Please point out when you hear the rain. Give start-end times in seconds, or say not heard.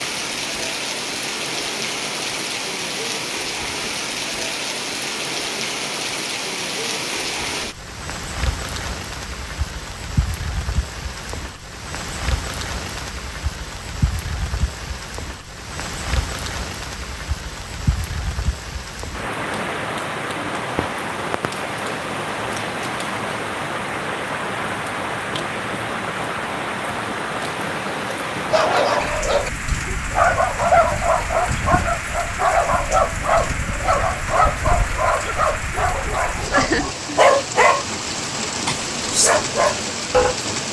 0.0-40.6.